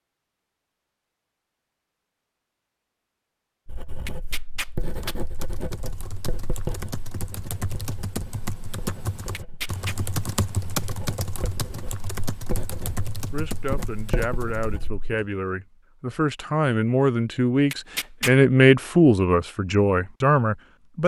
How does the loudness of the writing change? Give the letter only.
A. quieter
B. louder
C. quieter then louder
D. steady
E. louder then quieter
C.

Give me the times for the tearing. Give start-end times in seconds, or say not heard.
4.0-5.2, 9.3-9.9, 17.7-18.4.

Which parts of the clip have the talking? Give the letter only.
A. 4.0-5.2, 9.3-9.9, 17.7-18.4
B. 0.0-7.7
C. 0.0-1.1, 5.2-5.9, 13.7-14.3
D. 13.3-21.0
D.